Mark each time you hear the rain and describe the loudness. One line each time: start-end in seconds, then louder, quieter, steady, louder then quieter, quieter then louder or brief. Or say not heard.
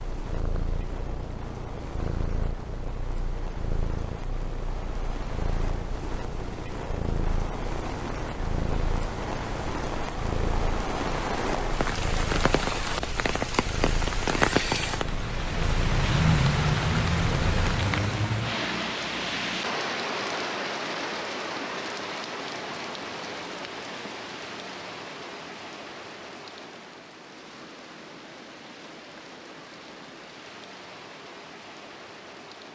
0.0-32.7 louder then quieter.